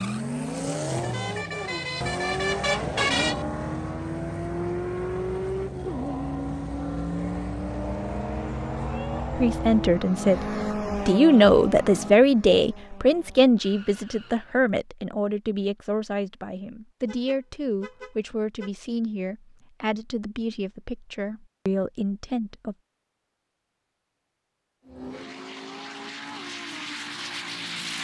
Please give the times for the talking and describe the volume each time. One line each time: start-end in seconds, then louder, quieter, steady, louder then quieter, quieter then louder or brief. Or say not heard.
9.3-22.8 quieter.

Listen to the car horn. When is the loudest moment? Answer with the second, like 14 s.
3 s.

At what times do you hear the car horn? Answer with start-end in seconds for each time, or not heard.
0.8-3.5, 17.1-18.7.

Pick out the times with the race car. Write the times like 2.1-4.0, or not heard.
0.0-14.6, 24.8-27.9.